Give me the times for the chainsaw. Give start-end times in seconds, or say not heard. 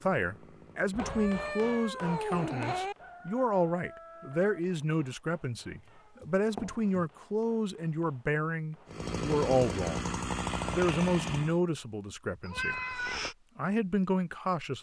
0.0-1.8, 8.8-11.6.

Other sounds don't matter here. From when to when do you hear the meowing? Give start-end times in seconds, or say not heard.
0.9-3.0, 6.2-7.0, 12.4-13.3.